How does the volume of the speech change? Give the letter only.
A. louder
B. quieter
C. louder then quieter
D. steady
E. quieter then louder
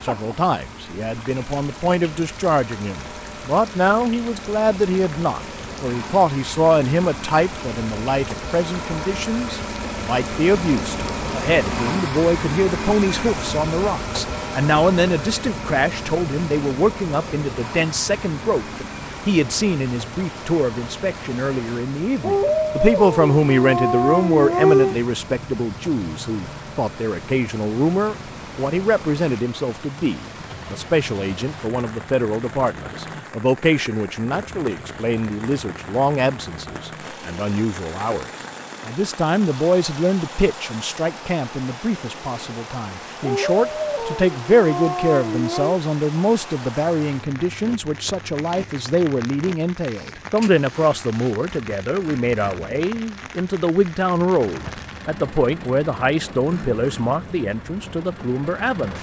D.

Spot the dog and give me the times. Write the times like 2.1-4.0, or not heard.
22.2-24.9, 43.2-45.8.